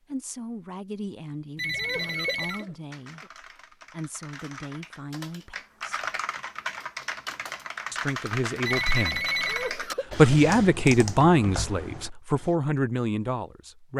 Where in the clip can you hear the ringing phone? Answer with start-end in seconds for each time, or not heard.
1.6-2.6, 8.7-9.8.